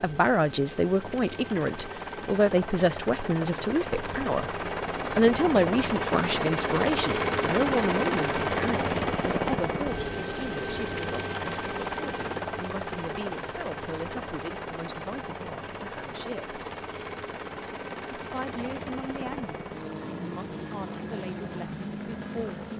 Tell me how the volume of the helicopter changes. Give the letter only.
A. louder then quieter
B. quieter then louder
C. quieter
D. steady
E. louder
A.